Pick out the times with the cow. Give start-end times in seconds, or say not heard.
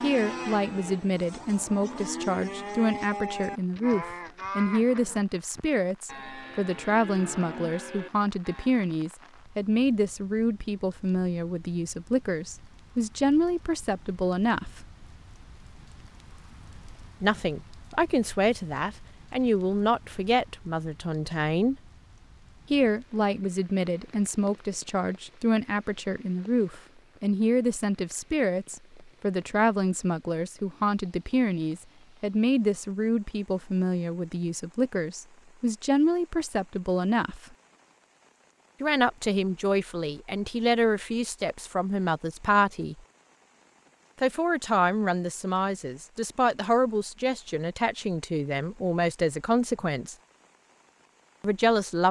0.0-8.7.